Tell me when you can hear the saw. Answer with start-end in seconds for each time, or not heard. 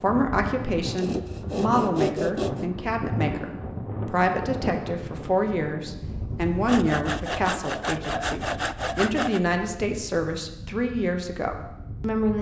0.9-2.6, 6.7-9.4.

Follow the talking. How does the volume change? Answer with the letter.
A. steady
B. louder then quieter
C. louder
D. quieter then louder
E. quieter
A.